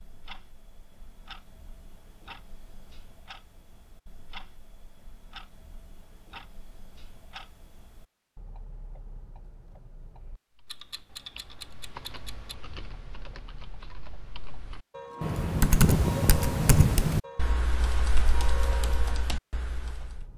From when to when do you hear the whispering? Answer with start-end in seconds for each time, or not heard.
not heard.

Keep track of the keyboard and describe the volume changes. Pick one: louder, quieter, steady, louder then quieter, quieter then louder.
louder then quieter.